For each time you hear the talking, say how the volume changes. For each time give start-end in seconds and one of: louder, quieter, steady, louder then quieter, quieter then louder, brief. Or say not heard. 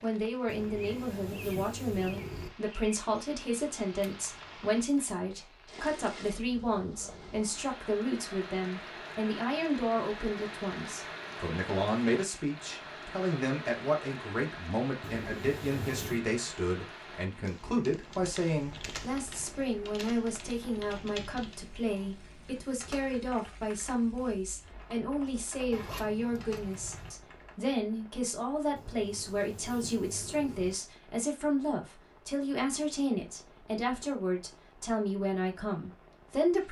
0.0-36.6 steady.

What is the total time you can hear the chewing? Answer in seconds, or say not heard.
not heard.